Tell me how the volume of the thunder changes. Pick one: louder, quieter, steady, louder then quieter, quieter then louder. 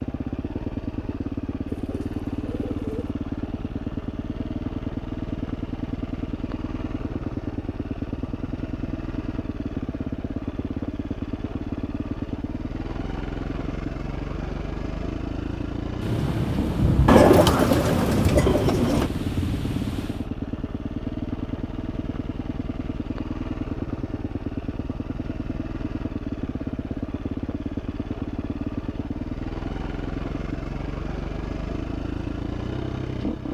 quieter.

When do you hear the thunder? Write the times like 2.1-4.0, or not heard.
16.0-20.2.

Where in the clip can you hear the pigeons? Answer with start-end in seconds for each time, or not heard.
1.6-3.1, 17.1-19.1.